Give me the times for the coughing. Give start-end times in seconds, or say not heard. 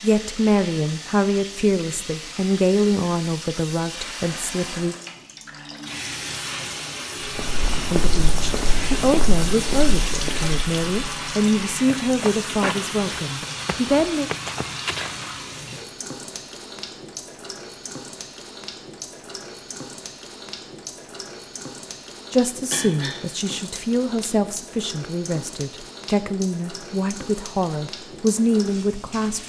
22.7-23.2.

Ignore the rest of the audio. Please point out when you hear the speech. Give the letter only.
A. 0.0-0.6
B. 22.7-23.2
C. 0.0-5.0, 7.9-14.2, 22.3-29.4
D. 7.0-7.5
C.